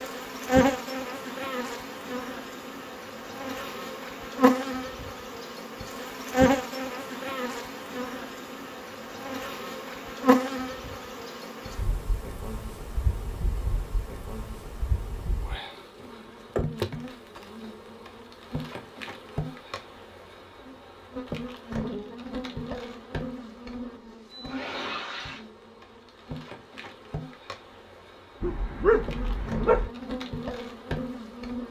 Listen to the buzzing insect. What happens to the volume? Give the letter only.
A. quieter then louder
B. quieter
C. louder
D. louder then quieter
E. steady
B.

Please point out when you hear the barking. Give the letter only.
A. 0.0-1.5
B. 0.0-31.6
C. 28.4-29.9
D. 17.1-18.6
C.